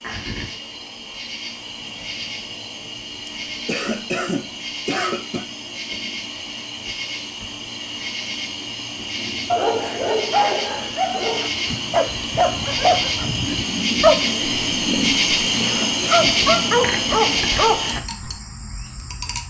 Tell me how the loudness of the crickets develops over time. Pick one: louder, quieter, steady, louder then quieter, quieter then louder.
louder.